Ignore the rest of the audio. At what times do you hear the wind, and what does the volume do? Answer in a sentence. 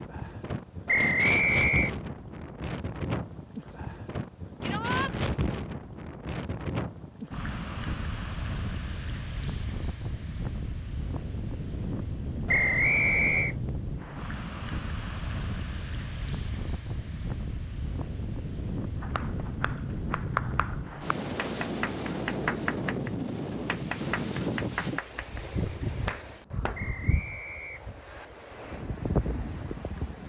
The wind can be heard from 0.0 to 30.2 s, at a steady volume.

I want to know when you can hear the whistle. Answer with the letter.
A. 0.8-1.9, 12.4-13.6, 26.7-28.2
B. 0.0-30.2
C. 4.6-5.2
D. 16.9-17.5
A.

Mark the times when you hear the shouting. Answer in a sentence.
The shouting can be heard from 4.6 to 5.2 s.